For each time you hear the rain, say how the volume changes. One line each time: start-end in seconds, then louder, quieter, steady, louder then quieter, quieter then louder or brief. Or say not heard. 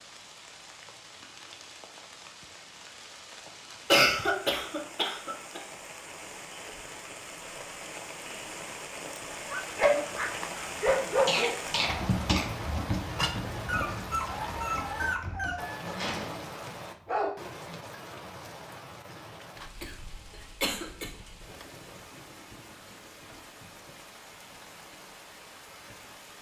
0.0-26.3 louder then quieter.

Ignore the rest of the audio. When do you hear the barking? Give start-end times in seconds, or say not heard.
9.5-17.8.